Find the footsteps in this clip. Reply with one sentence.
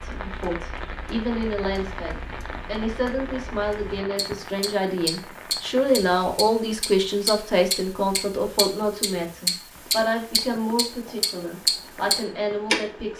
You can't hear the footsteps here.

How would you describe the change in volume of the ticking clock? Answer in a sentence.
The loudness of the ticking clock goes up.